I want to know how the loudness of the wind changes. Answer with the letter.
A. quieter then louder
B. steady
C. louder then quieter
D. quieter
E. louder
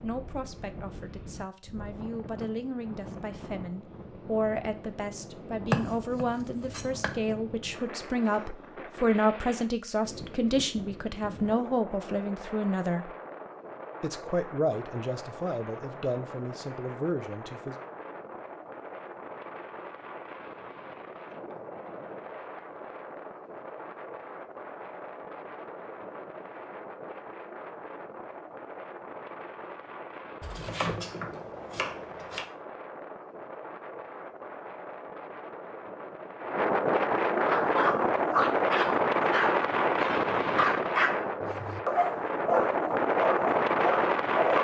E.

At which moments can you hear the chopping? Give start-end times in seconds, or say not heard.
5.7-7.2, 30.4-32.5.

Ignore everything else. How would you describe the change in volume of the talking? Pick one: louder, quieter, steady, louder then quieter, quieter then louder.
louder then quieter.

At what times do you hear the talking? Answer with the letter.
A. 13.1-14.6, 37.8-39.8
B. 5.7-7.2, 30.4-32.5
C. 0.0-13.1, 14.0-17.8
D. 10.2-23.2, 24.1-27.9
C.